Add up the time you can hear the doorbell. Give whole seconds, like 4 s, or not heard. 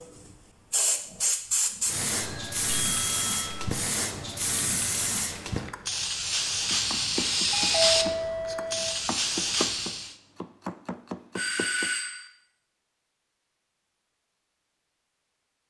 4 s.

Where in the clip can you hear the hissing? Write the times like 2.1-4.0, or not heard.
0.0-10.2.